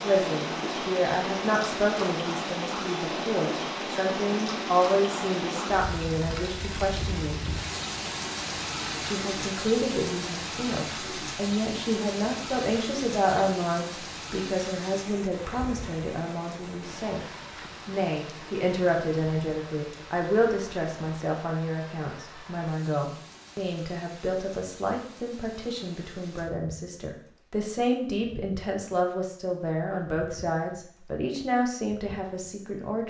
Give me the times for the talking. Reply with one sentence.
The talking can be heard from 0.0 to 7.4 s, from 9.0 to 17.2 s and from 17.9 to 33.0 s.